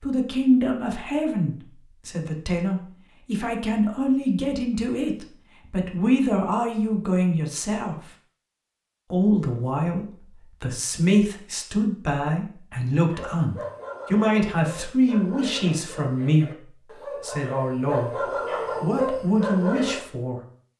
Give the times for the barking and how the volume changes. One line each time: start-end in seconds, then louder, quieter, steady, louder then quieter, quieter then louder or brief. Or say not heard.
13.1-20.0 louder.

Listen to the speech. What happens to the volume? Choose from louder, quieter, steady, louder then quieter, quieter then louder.
steady.